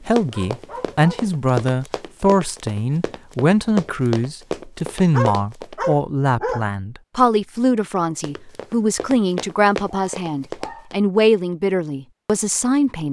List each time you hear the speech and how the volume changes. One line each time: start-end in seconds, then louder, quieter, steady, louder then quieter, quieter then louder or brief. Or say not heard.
0.0-13.0 steady.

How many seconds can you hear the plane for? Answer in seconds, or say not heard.
not heard.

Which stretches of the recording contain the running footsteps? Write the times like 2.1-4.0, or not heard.
0.1-5.8, 8.2-10.9.